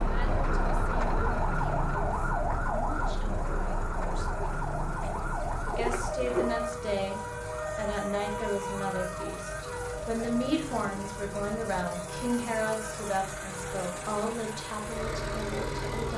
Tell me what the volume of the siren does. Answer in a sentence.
The loudness of the siren goes down.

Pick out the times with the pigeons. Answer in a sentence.
You can hear the pigeons from 5.0 to 6.8 s.